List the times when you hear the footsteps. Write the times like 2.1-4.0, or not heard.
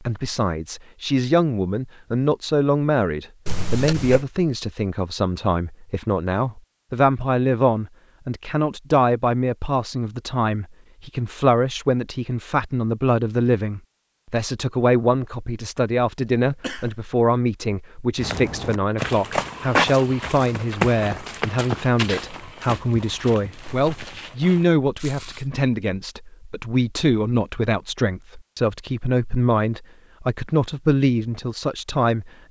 18.1-25.4.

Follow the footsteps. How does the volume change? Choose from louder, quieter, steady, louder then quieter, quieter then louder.
quieter.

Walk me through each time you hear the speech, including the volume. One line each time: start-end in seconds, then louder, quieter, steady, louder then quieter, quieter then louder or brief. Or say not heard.
0.0-32.4 steady.